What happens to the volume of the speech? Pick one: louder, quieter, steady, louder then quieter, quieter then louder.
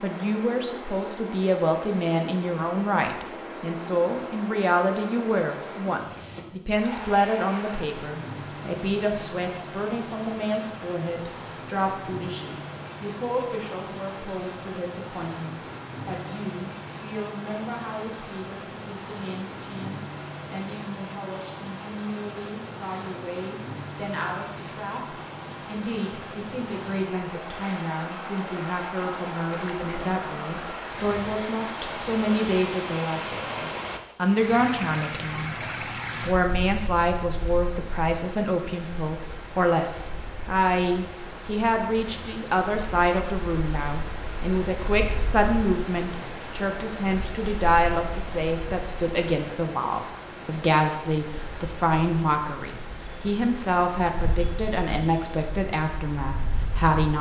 quieter then louder.